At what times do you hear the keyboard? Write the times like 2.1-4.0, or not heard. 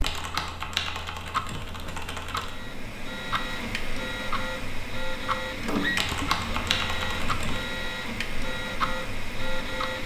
0.0-2.5, 6.0-7.7.